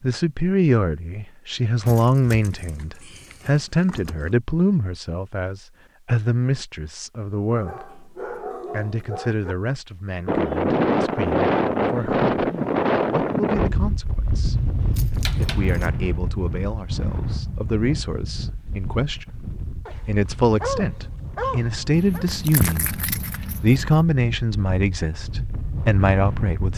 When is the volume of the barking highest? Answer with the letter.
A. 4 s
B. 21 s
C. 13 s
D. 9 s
B.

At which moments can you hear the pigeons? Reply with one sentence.
You can't hear the pigeons here.